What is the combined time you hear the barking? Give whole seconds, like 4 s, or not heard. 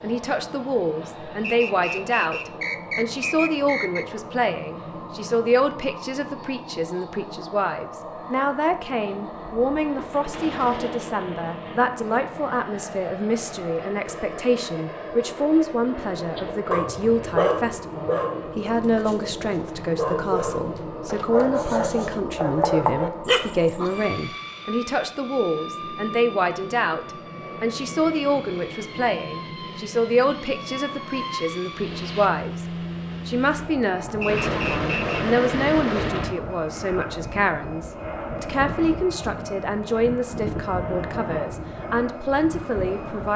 8 s.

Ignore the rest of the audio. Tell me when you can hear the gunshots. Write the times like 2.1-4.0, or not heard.
9.4-11.8, 34.2-36.3.